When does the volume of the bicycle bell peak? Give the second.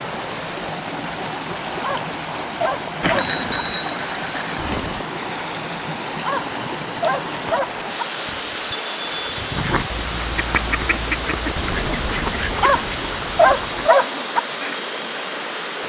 3 s.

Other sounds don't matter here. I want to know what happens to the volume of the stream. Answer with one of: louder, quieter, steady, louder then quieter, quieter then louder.
steady.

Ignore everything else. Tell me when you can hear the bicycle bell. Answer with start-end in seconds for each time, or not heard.
3.0-5.0, 8.2-9.9.